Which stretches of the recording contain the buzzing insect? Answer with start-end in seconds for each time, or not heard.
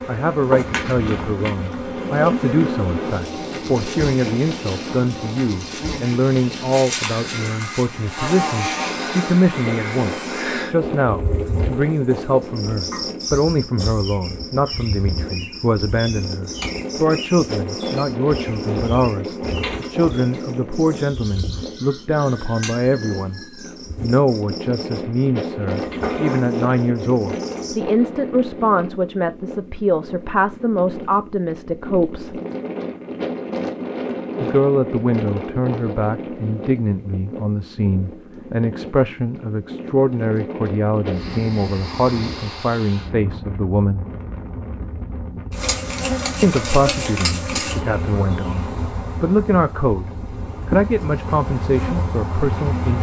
0.0-27.8, 45.5-52.9.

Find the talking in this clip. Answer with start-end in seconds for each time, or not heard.
0.1-23.4, 24.0-32.4, 34.4-44.0, 46.4-52.9.